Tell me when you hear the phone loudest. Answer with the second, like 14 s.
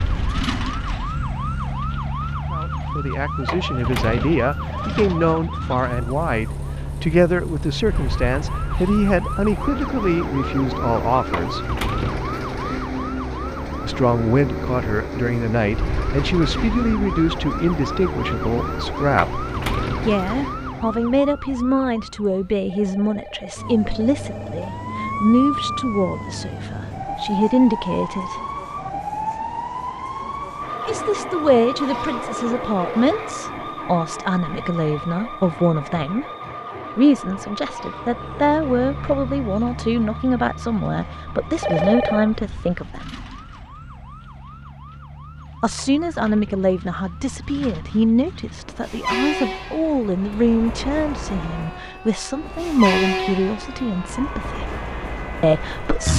42 s.